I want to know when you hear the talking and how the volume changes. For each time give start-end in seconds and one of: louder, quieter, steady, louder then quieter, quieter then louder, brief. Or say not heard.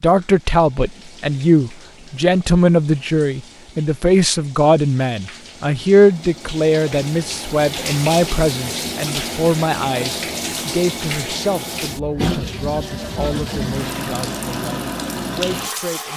0.0-16.1 quieter.